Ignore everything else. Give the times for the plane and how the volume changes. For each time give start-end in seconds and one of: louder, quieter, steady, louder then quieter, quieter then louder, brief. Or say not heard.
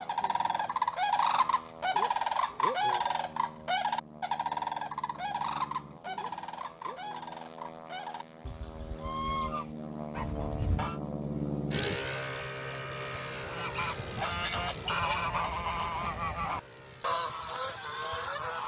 0.0-18.6 louder then quieter.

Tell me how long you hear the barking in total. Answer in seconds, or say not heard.
not heard.